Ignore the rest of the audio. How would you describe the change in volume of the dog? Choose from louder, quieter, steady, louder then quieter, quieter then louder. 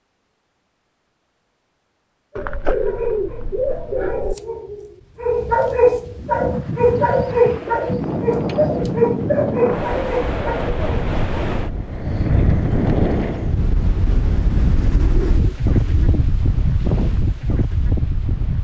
louder.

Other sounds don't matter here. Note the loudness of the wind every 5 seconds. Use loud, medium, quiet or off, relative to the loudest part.
off, loud, loud, loud.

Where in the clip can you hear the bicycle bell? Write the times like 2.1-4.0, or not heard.
not heard.